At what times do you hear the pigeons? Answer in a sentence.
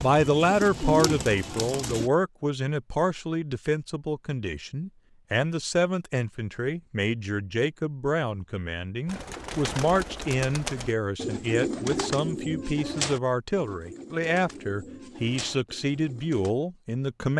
You can hear the pigeons from 0.0 to 2.1 s and from 9.1 to 16.5 s.